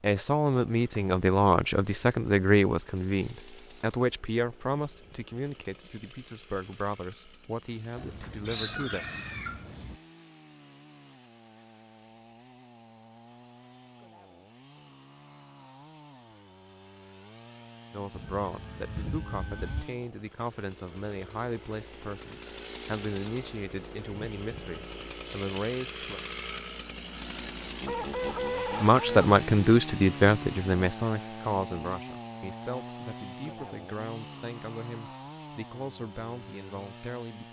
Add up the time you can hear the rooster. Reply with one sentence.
The rooster can be heard for 5 seconds in total.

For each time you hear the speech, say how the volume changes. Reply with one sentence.
The speech can be heard from 0.0 to 9.1 s, getting quieter; from 17.9 to 26.2 s, at a steady volume; and from 28.8 to 37.4 s, getting quieter.